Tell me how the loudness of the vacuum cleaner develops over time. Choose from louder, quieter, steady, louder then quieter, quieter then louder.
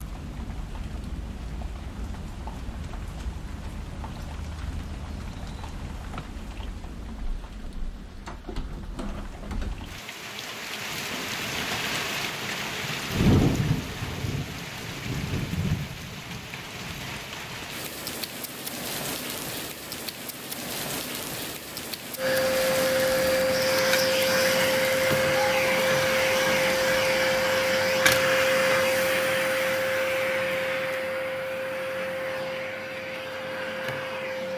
quieter.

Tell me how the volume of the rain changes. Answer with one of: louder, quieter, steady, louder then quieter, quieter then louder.
louder then quieter.